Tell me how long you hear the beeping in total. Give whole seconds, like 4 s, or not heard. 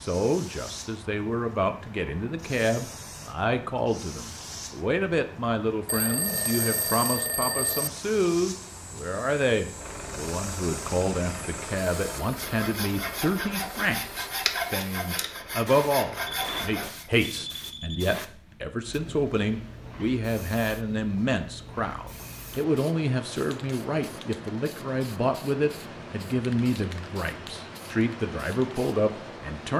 4 s.